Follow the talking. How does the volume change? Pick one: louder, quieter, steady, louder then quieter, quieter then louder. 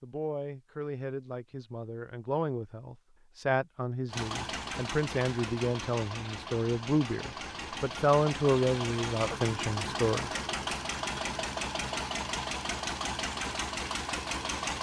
louder.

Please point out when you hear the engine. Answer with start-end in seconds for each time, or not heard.
4.0-14.7.